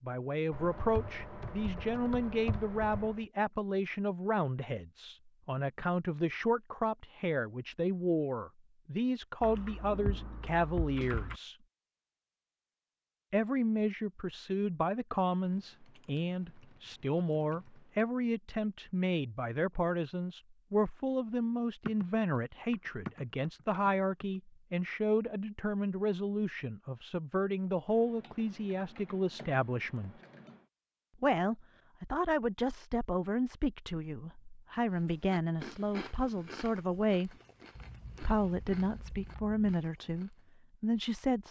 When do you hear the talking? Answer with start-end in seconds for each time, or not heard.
0.0-11.6, 13.3-30.1, 31.2-37.3, 38.2-41.4.